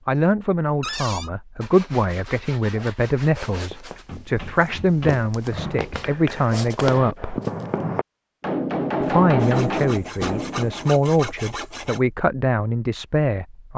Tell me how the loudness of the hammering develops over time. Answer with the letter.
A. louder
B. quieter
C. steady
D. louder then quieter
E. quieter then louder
A.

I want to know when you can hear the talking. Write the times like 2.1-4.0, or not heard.
0.1-7.4, 9.0-13.7.